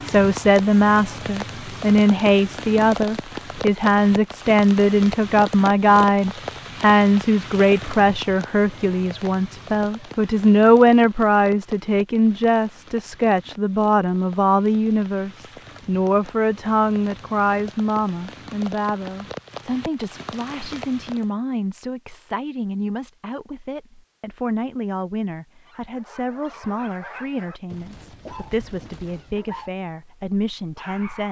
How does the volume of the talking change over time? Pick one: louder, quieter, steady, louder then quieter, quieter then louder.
quieter.